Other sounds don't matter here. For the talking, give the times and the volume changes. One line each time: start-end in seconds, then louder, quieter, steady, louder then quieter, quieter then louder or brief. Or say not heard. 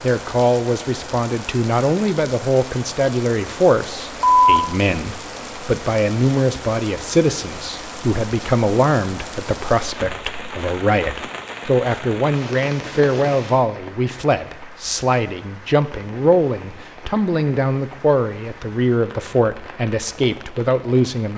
0.0-21.3 steady.